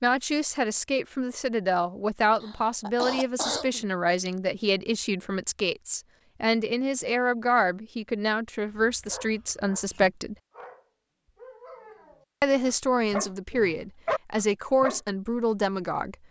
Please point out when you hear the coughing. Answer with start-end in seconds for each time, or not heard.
2.4-4.3.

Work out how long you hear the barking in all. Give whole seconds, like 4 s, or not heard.
6 s.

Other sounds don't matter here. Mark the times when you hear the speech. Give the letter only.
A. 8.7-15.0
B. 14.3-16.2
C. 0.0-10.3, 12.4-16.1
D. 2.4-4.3
C.